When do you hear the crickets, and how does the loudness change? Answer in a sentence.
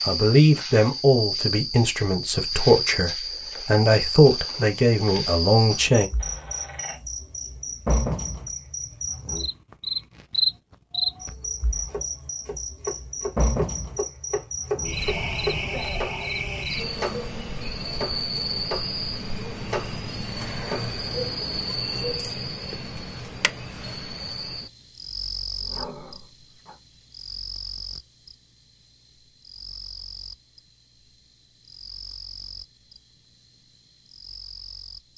The crickets can be heard from 0.0 to 35.1 s, getting quieter.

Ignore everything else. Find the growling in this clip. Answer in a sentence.
The growling can be heard from 6.2 to 7.0 s, from 14.7 to 16.6 s and from 25.6 to 26.8 s.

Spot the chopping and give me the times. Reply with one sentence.
The chopping can be heard from 11.9 to 16.2 s, from 16.9 to 18.9 s and from 19.6 to 20.9 s.